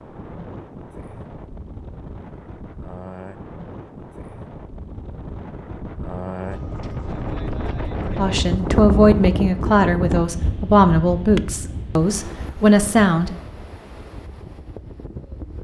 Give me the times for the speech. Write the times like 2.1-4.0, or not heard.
8.2-13.3.